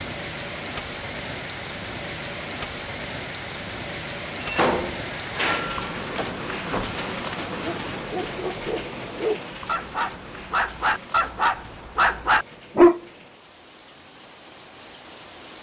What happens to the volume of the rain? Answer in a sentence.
The loudness of the rain goes down.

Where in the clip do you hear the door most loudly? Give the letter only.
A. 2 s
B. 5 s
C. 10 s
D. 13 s
B.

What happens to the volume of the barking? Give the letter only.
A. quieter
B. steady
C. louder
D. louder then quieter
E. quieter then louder
C.